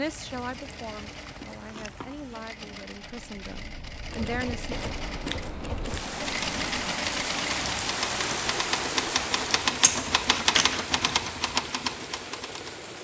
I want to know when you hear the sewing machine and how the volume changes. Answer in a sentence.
You can hear the sewing machine from 0.0 to 13.0 s, getting louder then quieter.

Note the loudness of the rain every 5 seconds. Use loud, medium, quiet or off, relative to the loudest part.
quiet, loud, medium.